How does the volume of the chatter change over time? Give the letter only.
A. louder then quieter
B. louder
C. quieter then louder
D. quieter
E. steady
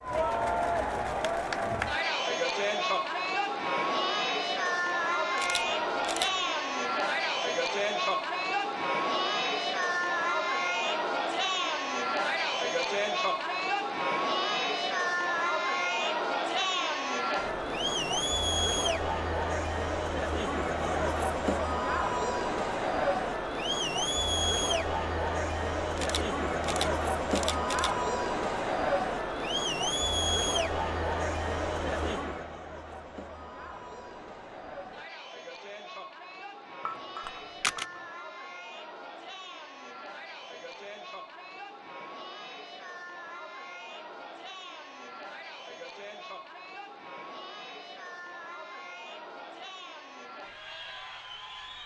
D.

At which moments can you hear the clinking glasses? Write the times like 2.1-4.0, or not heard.
36.9-38.1.